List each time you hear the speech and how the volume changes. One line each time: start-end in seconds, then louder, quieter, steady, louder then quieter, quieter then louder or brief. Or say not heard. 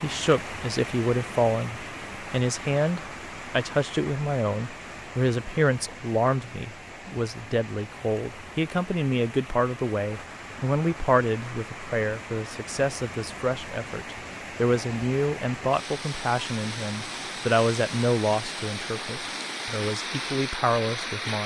0.0-21.4 steady.